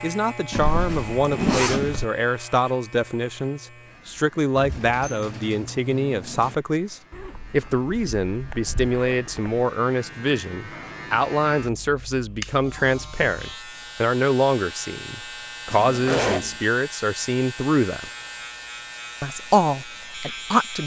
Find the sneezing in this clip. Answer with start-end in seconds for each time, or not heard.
not heard.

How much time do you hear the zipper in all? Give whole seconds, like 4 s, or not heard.
5 s.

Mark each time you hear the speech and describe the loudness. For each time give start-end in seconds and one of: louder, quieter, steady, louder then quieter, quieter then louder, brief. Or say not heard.
0.0-18.1 steady
19.2-20.8 brief.